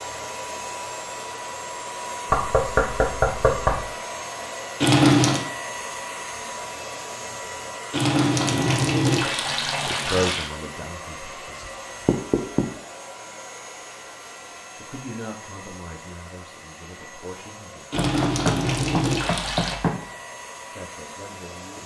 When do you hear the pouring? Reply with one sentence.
The pouring can be heard from 4.8 to 5.4 s, from 7.9 to 10.5 s and from 17.9 to 19.8 s.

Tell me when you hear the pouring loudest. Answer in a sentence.
The loudest moment of the pouring is at 5 seconds.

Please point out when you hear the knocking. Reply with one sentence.
The knocking can be heard from 2.3 to 3.9 s, from 12.1 to 12.7 s and from 17.9 to 19.9 s.